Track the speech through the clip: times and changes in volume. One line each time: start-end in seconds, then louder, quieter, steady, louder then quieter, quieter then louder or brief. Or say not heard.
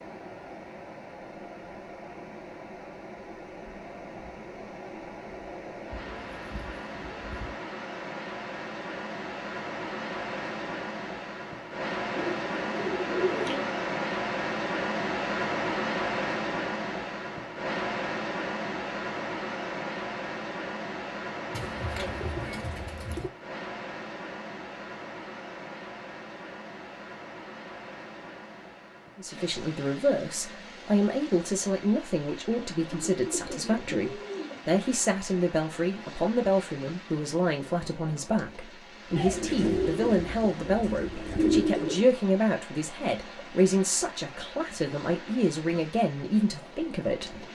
29.1-47.4 steady.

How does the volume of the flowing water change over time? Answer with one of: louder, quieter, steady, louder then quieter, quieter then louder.
louder then quieter.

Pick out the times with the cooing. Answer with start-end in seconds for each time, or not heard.
5.9-7.5, 12.2-13.7, 21.5-23.3, 32.8-34.6, 39.1-42.1.